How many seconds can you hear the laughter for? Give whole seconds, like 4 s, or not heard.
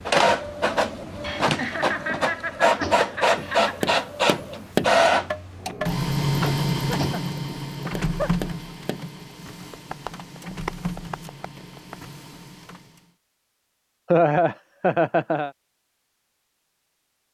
6 s.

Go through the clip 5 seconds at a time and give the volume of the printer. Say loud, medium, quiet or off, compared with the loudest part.
loud, loud, quiet, off.